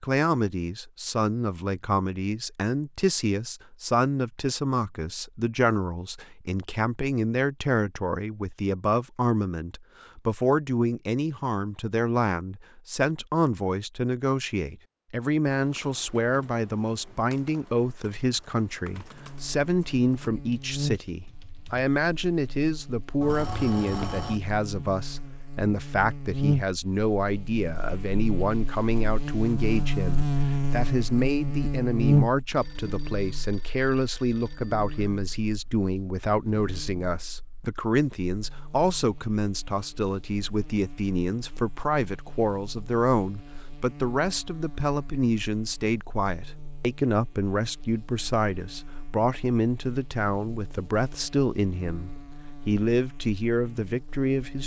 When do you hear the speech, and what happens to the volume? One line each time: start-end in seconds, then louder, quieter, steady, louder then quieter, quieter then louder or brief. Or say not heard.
0.0-54.6 steady.